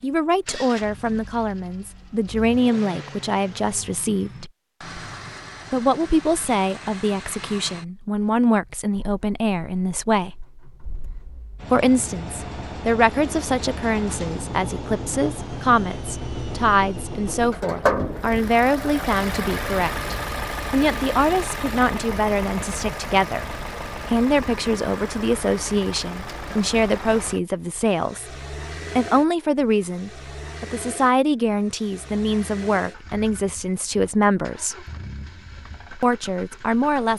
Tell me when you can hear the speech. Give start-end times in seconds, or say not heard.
0.0-4.5, 5.7-10.4, 11.7-28.3, 28.9-34.9, 36.0-37.1.